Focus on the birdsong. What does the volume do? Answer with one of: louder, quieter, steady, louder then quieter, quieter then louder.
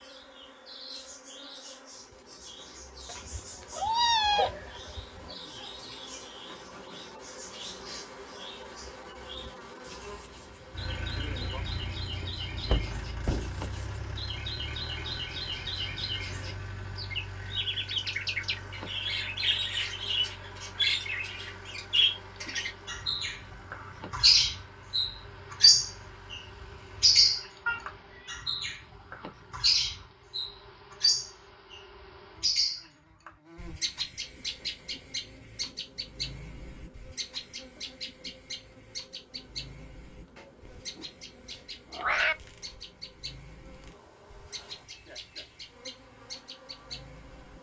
louder then quieter.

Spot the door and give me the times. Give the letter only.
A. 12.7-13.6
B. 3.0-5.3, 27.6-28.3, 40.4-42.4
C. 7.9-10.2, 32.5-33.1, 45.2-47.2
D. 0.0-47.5
A.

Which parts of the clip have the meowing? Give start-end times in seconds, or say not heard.
3.0-5.3, 27.6-28.3, 40.4-42.4.